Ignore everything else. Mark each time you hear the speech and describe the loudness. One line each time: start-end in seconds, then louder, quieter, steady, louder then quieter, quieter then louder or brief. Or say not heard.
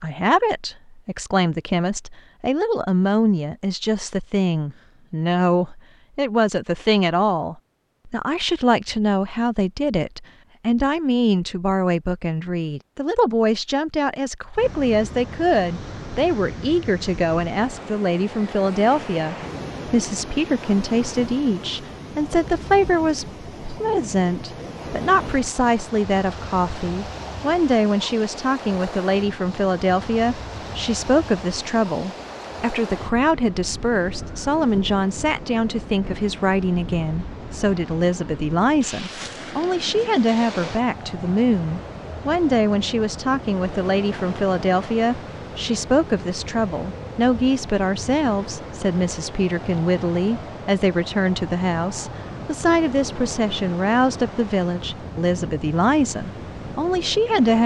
0.0-57.6 steady.